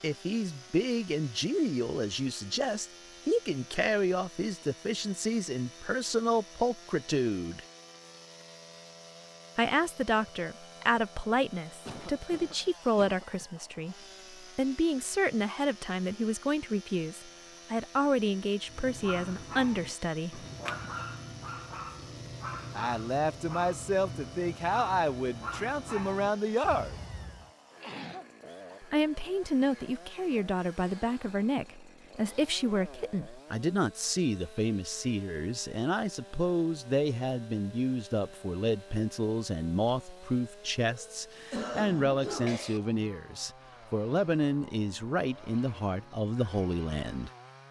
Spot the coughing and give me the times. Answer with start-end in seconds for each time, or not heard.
11.8-13.4, 27.8-28.8, 40.9-42.8.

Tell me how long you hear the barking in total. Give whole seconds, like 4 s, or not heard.
9 s.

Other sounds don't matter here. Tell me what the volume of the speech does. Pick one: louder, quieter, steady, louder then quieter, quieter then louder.
steady.